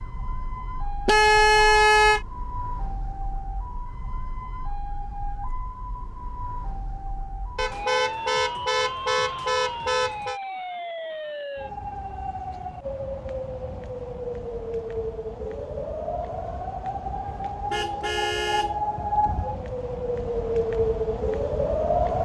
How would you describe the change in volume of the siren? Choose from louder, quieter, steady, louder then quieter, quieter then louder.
louder.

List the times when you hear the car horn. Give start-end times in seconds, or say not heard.
1.1-2.2, 7.5-10.3, 17.2-18.8.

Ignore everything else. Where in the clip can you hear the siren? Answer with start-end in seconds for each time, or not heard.
0.0-22.2.